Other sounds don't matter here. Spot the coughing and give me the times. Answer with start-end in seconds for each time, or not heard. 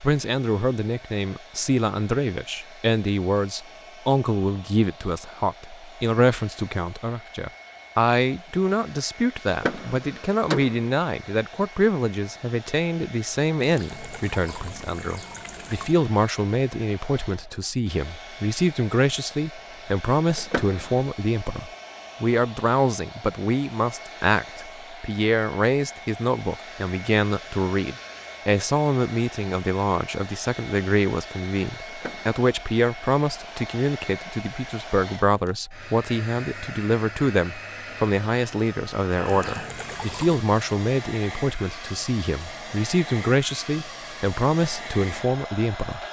not heard.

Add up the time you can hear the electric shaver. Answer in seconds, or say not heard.
not heard.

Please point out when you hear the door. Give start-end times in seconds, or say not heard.
9.4-10.9, 20.4-21.0, 31.9-32.4.